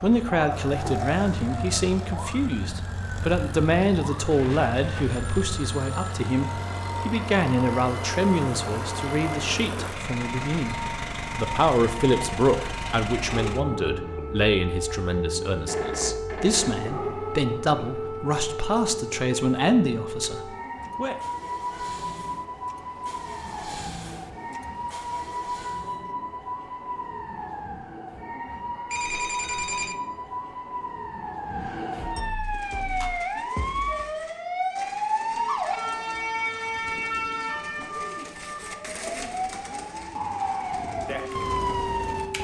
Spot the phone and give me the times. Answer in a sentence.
You can hear the phone from 4.3 to 6.2 s, from 15.7 to 17.1 s and from 28.9 to 29.9 s.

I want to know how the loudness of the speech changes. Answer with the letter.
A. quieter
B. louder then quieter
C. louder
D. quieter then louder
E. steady
E.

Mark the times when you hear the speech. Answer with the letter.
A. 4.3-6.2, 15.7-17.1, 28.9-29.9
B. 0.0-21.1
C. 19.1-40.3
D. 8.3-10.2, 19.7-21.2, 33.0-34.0
B.